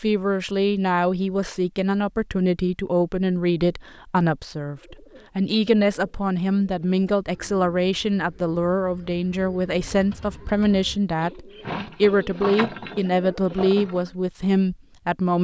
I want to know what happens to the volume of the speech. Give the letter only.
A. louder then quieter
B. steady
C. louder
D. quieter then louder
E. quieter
B.